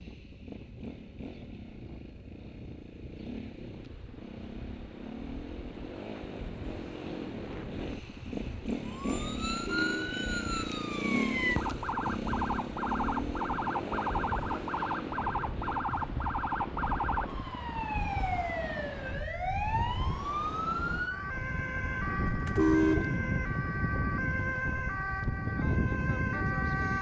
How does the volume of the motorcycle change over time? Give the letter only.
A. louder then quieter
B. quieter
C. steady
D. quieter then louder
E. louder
A.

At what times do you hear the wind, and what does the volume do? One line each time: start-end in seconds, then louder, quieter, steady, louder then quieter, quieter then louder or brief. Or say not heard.
0.0-26.9 louder.